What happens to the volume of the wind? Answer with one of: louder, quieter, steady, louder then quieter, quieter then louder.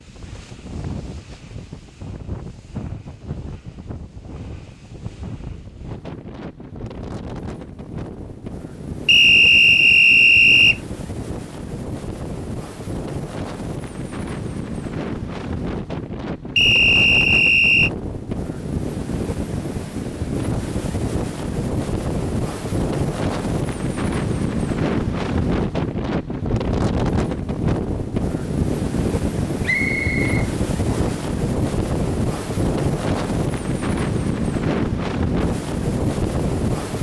louder.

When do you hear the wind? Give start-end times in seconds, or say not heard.
0.0-36.9.